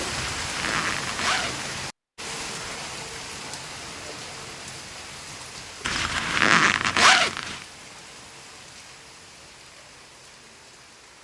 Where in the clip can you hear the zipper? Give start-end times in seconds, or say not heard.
0.1-1.6, 5.8-7.6.